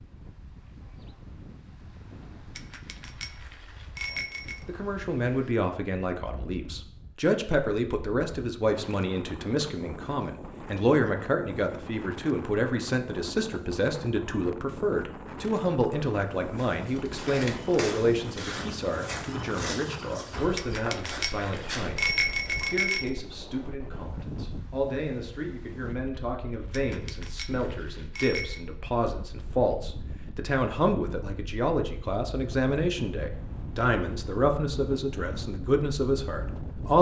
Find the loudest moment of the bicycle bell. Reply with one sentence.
The loudest moment of the bicycle bell is at 22 seconds.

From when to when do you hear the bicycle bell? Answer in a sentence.
The bicycle bell can be heard from 2.5 to 4.7 s, from 20.6 to 23.1 s and from 26.7 to 28.6 s.